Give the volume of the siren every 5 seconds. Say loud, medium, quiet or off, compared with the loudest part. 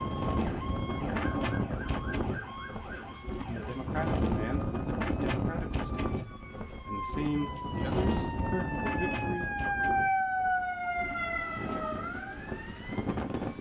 medium, loud, loud.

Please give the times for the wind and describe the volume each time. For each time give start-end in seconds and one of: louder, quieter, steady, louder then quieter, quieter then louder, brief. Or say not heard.
0.0-13.5 quieter.